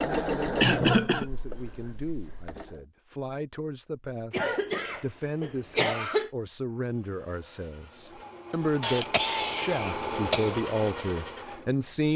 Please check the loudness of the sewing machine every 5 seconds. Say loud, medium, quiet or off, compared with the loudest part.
loud, medium, loud.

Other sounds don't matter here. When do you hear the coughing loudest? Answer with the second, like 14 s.
1 s.